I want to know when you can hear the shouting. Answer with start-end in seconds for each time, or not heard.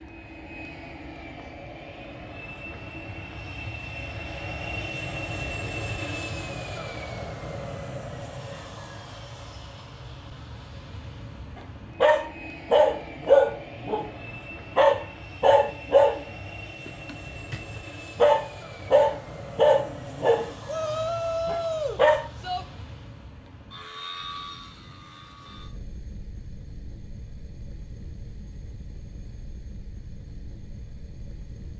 20.6-22.6.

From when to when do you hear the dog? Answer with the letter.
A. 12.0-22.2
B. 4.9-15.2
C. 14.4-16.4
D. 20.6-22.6
A.